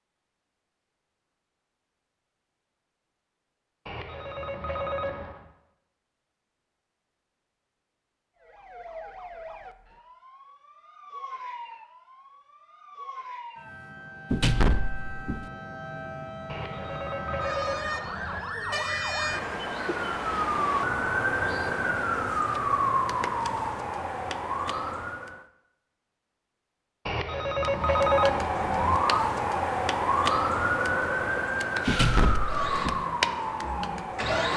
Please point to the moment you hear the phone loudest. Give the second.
28 s.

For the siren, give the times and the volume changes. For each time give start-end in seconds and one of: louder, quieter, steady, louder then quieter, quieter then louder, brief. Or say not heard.
8.4-25.4 louder
27.6-34.5 steady.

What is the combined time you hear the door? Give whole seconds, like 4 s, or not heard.
2 s.